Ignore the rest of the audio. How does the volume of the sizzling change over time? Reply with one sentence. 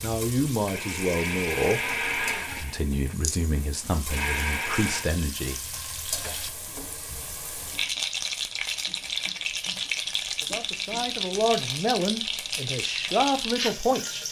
The volume of the sizzling goes up.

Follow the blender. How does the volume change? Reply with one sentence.
The volume of the blender goes down, then up.